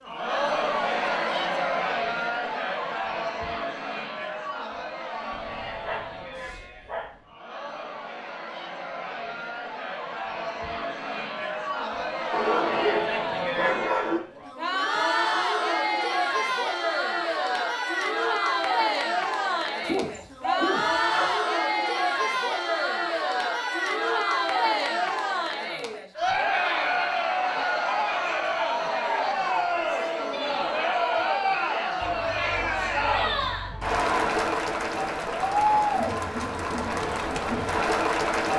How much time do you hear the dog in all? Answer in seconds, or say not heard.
7 s.